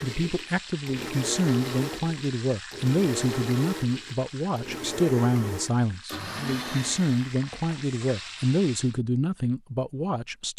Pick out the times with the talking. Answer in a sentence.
The talking can be heard from 0.0 to 10.5 s.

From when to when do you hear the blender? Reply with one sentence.
The blender can be heard from 0.0 to 7.2 s.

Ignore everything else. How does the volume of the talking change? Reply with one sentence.
The loudness of the talking stays about the same.